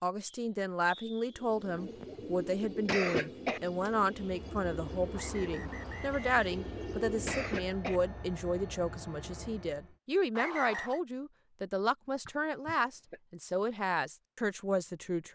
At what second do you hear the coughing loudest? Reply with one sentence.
The volume of the coughing peaks at 3 seconds.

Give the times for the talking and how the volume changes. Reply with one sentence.
You can hear the talking from 0.0 to 15.2 s, at a steady volume.